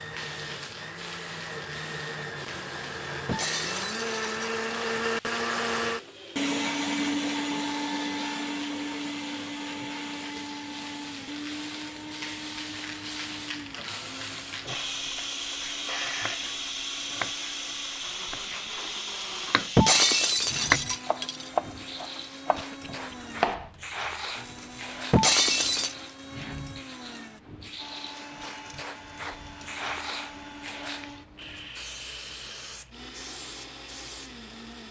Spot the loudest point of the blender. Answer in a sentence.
The volume of the blender peaks at 7 seconds.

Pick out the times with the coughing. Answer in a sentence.
You can hear the coughing from 22.6 to 23.1 s.